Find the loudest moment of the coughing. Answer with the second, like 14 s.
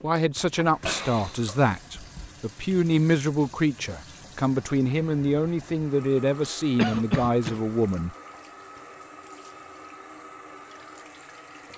7 s.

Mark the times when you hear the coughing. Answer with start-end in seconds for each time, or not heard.
0.7-2.3, 6.4-7.6.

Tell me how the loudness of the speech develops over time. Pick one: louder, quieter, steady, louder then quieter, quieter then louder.
steady.